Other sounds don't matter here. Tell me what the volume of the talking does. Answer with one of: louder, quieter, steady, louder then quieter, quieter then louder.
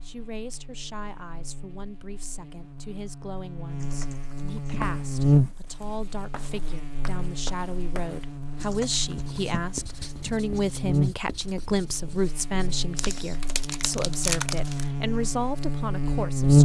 louder.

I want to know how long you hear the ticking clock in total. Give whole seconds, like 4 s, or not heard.
not heard.